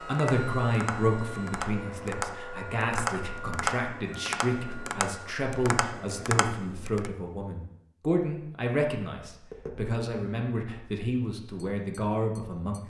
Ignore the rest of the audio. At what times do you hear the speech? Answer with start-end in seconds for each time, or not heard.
0.0-12.8.